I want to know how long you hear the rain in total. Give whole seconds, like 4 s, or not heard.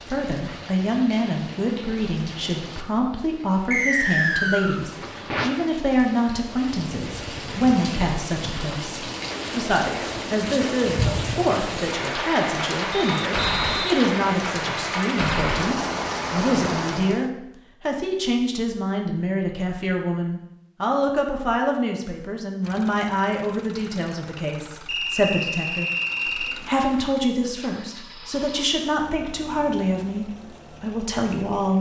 17 s.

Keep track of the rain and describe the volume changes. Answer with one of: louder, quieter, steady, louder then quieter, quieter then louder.
louder.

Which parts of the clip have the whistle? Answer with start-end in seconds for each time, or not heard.
3.7-4.8, 12.9-14.9, 24.9-26.6.